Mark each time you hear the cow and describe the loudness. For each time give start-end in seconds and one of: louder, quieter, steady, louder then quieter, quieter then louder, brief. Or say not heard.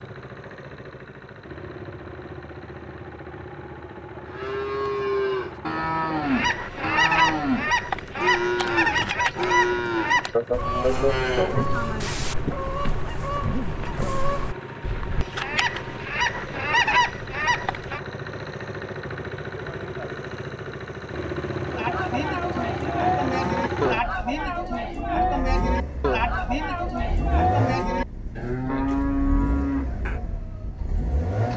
4.2-12.3 steady
21.6-30.2 steady.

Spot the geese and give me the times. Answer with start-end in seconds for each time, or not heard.
6.2-18.0.